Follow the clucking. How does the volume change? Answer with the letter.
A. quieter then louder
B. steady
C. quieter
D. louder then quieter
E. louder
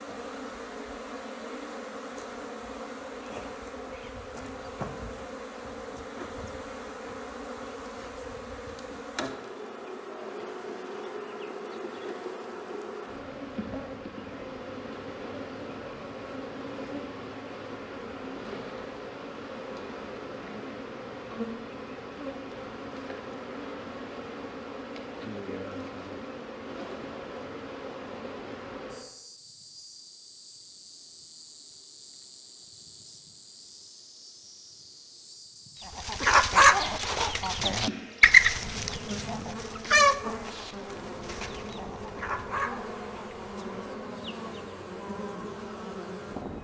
A.